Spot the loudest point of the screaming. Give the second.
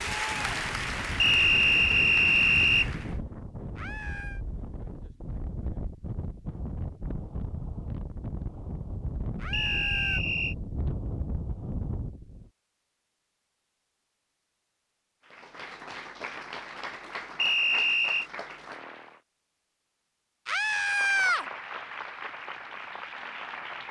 21 s.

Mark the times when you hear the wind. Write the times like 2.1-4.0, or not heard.
0.0-12.5.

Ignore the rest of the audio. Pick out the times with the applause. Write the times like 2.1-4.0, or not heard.
0.0-3.2, 15.2-19.2, 20.6-23.8.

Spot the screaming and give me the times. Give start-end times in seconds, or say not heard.
3.8-4.4, 9.3-10.2, 20.4-21.4.